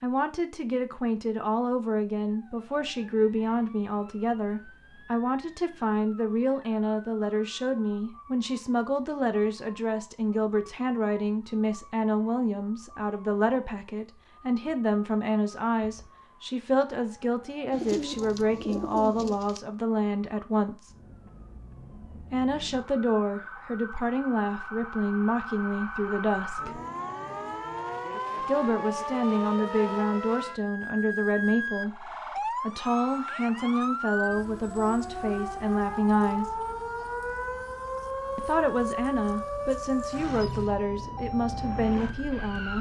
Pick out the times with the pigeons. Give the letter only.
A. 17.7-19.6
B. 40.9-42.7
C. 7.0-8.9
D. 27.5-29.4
A.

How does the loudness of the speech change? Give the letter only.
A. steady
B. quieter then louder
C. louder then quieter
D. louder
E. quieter
A.